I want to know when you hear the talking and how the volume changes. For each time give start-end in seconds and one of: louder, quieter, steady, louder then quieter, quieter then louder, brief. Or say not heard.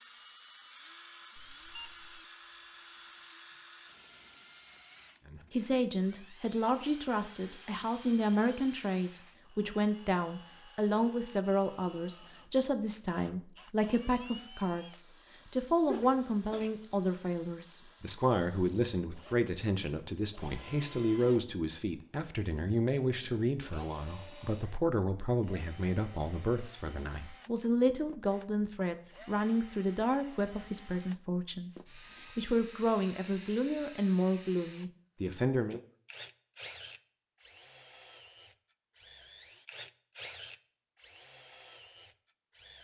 5.2-35.8 steady.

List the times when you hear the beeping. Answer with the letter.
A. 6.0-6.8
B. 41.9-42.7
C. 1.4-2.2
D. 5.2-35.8
C.